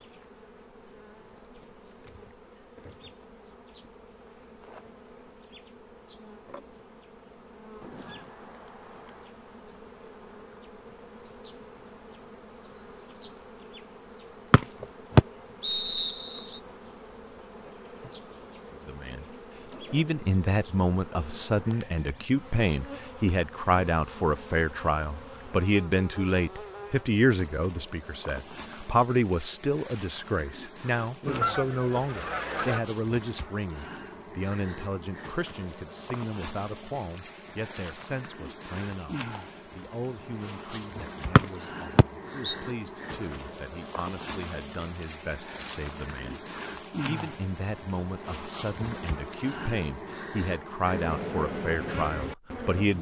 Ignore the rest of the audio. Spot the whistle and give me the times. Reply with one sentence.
The whistle can be heard from 14.5 to 16.4 s and from 41.4 to 42.5 s.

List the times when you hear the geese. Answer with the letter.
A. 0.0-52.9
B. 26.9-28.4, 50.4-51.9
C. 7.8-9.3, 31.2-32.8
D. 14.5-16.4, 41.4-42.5
C.